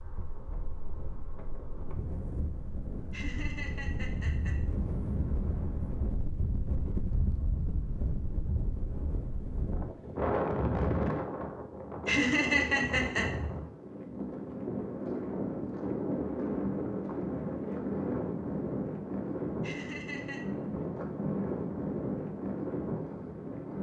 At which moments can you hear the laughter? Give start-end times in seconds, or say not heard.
3.1-4.6, 12.1-13.3, 19.6-20.4.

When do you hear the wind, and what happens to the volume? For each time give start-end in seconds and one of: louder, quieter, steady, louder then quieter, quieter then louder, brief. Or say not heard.
0.0-23.7 louder.